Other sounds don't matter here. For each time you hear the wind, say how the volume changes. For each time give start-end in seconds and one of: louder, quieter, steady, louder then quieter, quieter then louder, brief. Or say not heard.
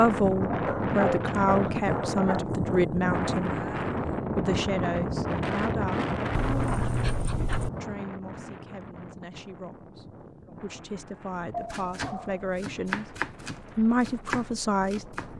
0.0-15.3 quieter.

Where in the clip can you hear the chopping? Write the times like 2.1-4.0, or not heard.
11.7-15.3.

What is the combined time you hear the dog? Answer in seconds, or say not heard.
4 s.